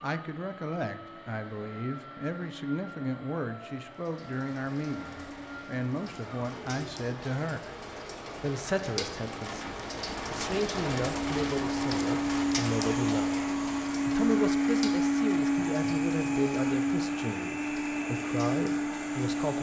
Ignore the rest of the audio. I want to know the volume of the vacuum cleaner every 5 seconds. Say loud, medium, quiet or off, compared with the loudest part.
quiet, quiet, loud, loud.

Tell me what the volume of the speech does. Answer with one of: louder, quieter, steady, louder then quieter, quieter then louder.
steady.